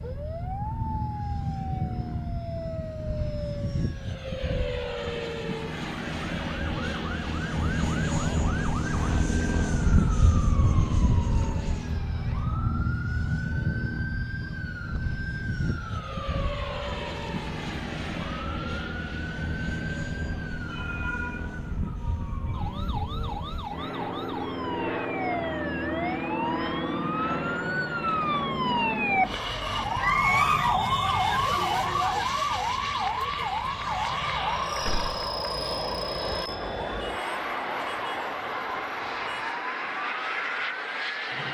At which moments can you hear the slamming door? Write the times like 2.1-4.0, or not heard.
34.8-35.2.